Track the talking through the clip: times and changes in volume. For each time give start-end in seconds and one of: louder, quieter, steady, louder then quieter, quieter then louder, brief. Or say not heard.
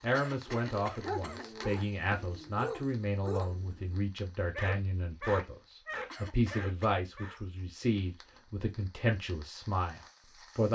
0.0-10.7 steady.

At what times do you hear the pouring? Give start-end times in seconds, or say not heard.
not heard.